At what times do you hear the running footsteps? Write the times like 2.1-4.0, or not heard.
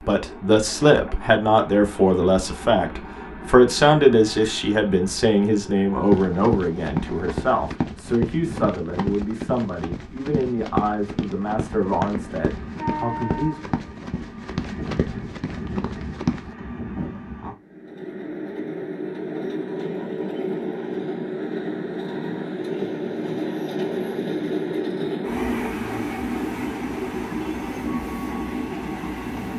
6.1-16.6.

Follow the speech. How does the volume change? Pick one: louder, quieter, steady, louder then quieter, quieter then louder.
quieter.